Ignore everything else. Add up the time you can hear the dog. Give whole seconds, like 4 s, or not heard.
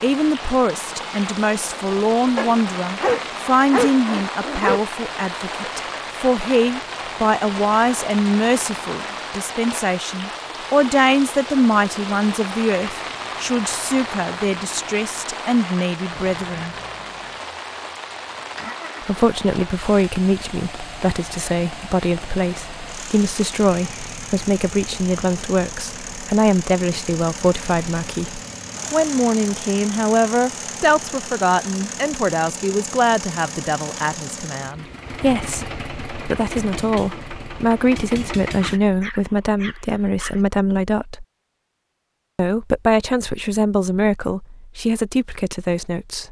4 s.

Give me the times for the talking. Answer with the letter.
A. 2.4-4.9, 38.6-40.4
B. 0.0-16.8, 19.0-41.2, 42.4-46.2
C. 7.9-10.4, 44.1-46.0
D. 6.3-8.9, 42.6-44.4
B.